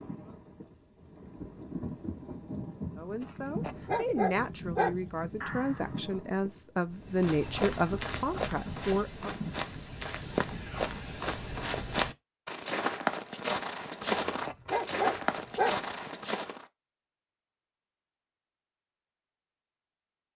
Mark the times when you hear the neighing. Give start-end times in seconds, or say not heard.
5.4-6.0.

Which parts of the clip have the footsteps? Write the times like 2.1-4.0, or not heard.
7.0-16.6.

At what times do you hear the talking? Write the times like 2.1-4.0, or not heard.
3.0-9.3.